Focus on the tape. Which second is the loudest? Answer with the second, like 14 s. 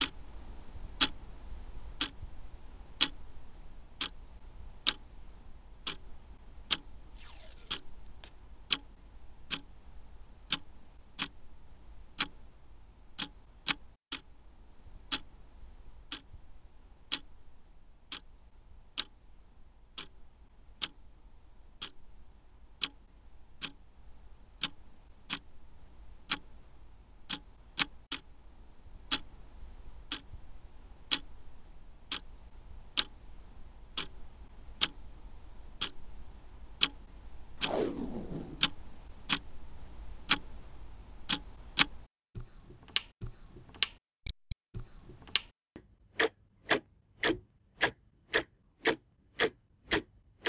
38 s.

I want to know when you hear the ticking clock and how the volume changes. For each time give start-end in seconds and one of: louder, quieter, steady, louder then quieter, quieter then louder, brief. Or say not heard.
0.0-50.4 quieter then louder.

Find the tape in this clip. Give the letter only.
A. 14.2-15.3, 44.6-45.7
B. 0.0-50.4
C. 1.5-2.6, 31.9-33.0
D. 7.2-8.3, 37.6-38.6
D.